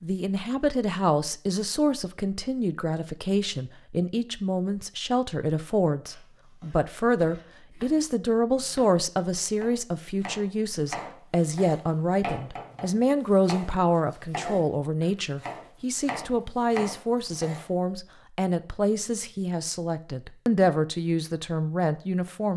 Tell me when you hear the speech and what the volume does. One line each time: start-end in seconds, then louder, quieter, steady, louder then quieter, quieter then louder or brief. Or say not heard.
0.0-22.5 steady.